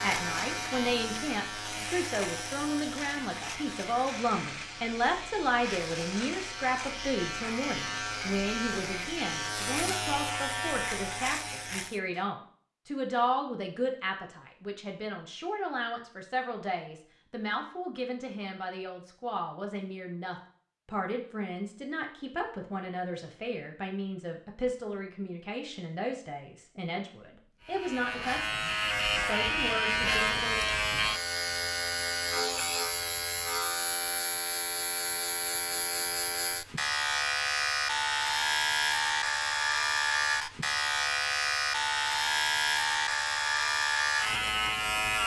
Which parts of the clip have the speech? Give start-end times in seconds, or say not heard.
0.0-30.6.